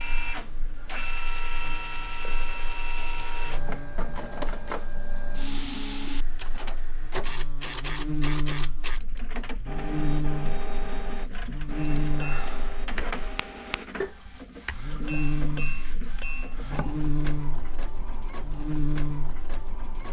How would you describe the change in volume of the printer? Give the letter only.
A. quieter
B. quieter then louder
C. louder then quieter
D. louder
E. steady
A.